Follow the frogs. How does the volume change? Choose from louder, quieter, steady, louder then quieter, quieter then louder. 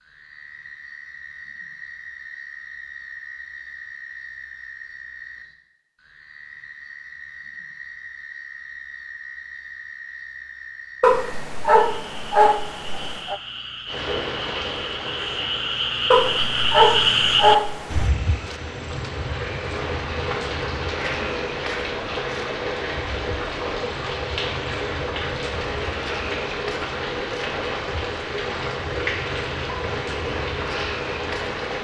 louder then quieter.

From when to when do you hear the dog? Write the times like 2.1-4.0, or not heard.
11.0-13.4, 16.1-18.1.